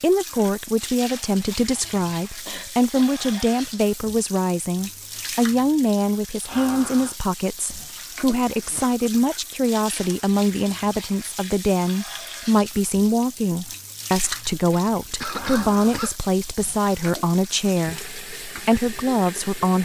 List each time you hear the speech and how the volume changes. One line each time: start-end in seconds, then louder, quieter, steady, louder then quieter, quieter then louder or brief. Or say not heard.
0.0-19.8 steady.